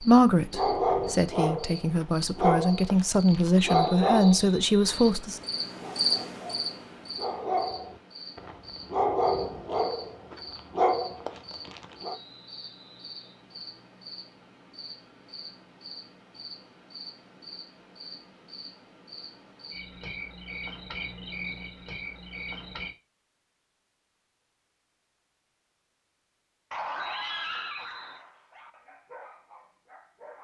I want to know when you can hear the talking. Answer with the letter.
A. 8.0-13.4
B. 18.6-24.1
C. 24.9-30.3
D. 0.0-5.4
D.